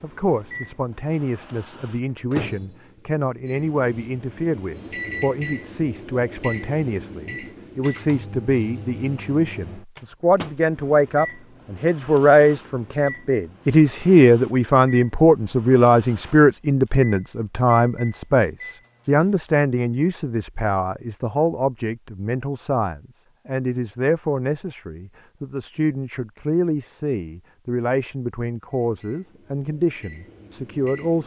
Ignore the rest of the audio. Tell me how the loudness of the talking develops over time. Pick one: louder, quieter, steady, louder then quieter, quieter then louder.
louder then quieter.